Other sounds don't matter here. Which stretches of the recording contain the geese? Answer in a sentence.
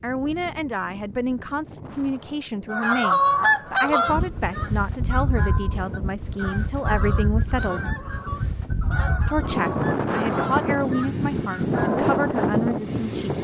You can hear the geese from 2.7 to 12.1 s.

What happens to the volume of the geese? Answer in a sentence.
The volume of the geese goes down.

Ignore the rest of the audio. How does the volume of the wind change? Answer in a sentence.
The volume of the wind goes up.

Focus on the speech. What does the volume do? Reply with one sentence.
The loudness of the speech stays about the same.